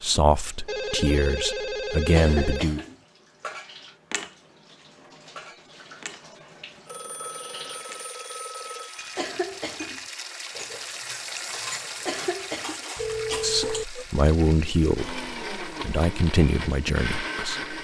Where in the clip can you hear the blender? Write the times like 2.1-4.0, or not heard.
14.9-17.8.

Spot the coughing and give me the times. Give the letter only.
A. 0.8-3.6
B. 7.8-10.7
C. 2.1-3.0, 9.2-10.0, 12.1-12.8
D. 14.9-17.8
C.